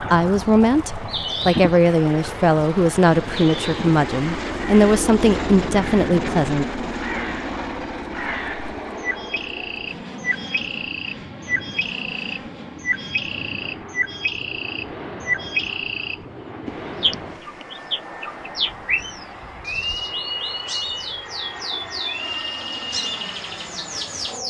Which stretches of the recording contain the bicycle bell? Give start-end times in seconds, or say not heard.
not heard.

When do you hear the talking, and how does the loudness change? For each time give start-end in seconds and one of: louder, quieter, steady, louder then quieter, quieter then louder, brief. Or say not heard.
0.0-6.7 steady.